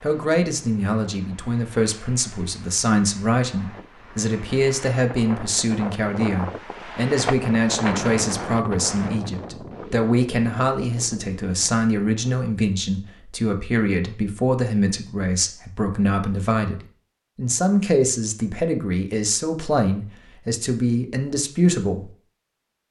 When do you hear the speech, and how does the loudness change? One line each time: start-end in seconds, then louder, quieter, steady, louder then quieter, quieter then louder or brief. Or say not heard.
0.0-22.1 steady.